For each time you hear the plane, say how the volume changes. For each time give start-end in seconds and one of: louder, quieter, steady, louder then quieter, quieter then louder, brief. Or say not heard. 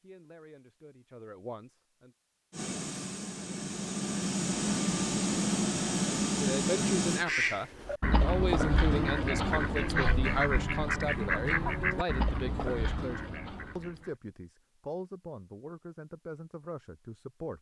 2.5-7.2 louder.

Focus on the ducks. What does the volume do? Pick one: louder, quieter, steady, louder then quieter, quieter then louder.
quieter.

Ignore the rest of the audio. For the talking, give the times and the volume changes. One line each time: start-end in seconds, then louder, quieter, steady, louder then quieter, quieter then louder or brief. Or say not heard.
0.0-2.1 brief
6.4-17.5 quieter.